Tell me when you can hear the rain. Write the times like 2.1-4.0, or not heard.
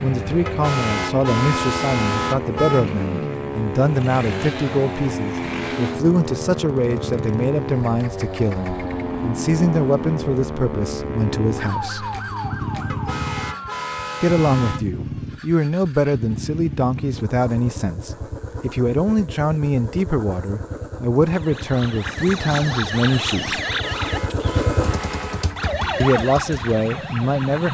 not heard.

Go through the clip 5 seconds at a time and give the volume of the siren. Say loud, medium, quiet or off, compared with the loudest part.
loud, loud, loud, off, loud, loud.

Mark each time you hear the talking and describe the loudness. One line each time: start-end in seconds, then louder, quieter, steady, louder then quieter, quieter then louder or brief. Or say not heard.
0.0-12.1 steady
14.2-23.6 steady
26.0-27.6 brief.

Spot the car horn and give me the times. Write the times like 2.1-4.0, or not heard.
0.5-2.9, 12.8-14.8, 23.6-25.5.